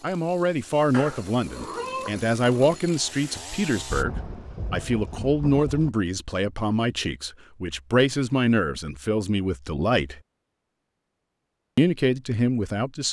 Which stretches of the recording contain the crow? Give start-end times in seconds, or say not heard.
not heard.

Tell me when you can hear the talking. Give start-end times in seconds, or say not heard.
0.0-10.2, 11.8-13.0.